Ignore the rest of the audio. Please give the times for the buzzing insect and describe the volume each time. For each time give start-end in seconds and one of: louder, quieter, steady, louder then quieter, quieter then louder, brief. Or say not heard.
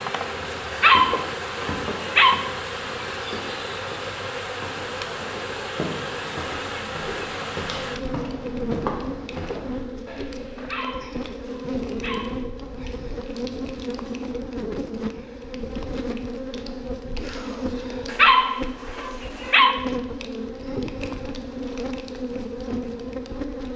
0.0-23.7 steady.